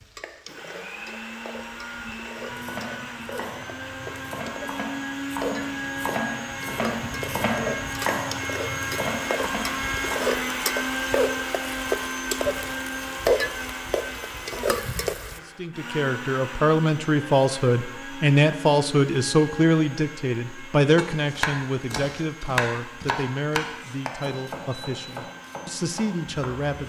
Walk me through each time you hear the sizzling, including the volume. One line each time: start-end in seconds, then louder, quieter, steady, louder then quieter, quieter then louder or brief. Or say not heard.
0.0-15.4 louder.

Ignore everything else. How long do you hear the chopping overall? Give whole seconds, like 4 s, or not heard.
14 s.